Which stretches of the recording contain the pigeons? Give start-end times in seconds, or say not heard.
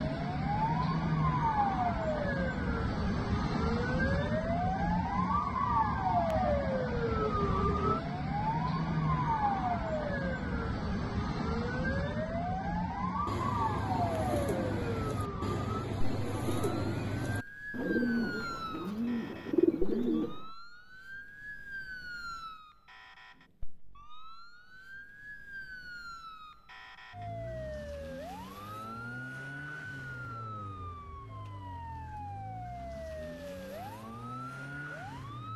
13.2-20.4.